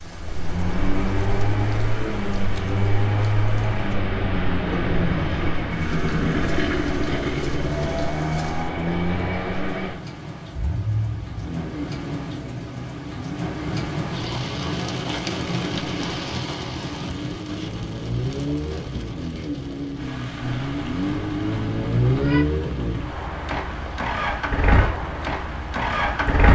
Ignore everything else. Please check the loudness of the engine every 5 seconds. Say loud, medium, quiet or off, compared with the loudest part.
loud, loud, medium, medium, loud, loud.